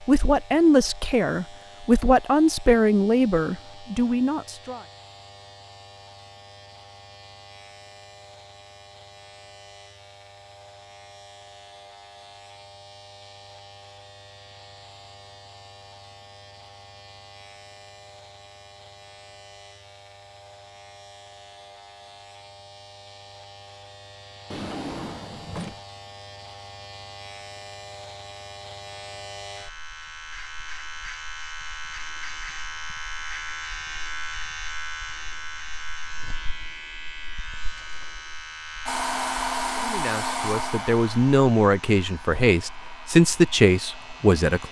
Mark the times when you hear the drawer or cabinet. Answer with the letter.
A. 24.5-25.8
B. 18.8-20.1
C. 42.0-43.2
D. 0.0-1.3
A.